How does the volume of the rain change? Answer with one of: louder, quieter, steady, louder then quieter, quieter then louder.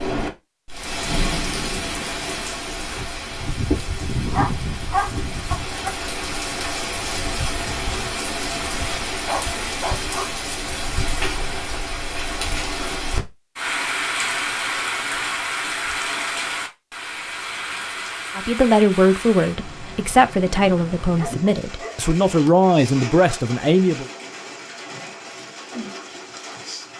quieter.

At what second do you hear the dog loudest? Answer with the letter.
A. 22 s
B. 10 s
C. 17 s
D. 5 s
D.